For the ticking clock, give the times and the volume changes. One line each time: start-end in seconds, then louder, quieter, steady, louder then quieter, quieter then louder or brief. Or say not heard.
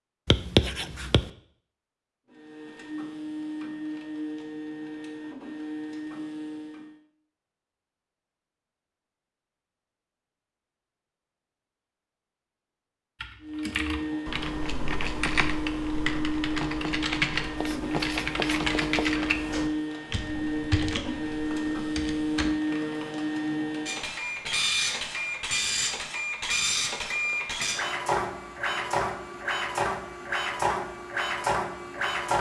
not heard.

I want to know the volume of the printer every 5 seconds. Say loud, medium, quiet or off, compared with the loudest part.
medium, medium, medium, loud, loud, loud, loud.